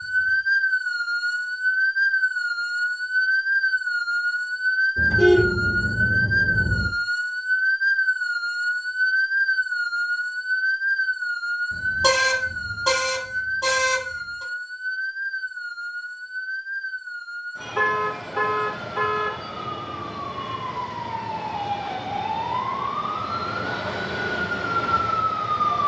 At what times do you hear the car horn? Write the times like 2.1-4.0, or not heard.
5.0-6.9, 11.7-14.4, 17.8-19.4.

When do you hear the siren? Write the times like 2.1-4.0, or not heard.
0.0-25.8.